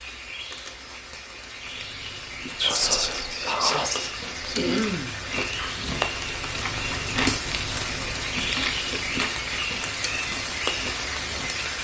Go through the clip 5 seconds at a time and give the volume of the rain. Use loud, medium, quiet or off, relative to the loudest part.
medium, loud, loud.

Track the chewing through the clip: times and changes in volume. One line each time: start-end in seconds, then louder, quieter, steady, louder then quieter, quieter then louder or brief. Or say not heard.
1.6-11.6 louder then quieter.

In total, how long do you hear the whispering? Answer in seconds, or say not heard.
2 s.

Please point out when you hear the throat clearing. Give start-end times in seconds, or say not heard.
4.5-5.2.